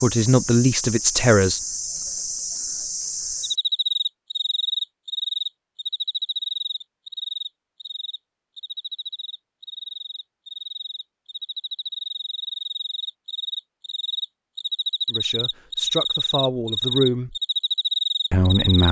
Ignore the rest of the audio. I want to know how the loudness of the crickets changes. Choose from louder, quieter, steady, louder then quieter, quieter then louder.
quieter then louder.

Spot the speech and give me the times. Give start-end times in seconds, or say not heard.
0.0-1.6, 15.1-17.4, 18.3-18.8.